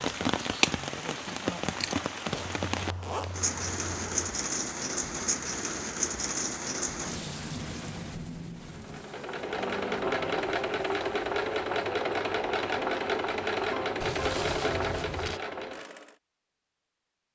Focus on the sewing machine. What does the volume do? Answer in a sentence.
The loudness of the sewing machine stays about the same.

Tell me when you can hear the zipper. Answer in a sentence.
You can hear the zipper from 2.3 to 4.3 s and from 14.0 to 15.4 s.